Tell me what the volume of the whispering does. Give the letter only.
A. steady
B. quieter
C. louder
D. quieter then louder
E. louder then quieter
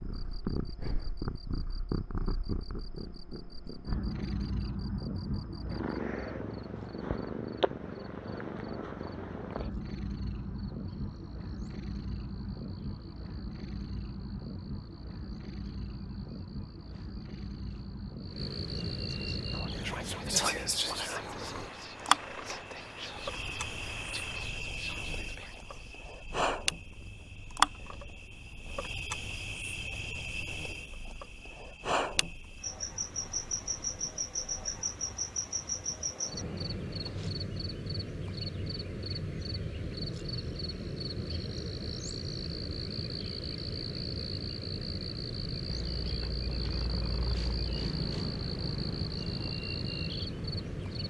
B.